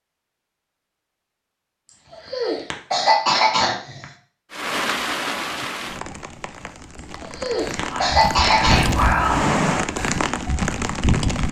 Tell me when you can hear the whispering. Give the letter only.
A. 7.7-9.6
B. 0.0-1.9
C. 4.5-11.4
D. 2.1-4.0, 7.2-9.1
A.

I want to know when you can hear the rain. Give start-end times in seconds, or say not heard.
4.5-11.4.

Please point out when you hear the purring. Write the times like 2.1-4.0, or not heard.
not heard.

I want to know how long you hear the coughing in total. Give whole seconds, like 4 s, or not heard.
4 s.